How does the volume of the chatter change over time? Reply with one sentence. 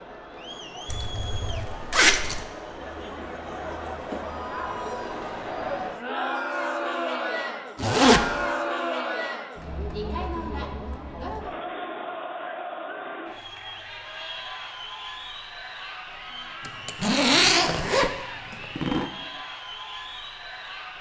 The volume of the chatter goes up, then down.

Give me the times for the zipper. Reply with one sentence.
The zipper can be heard from 0.8 to 2.5 s, from 7.8 to 8.3 s and from 16.6 to 19.1 s.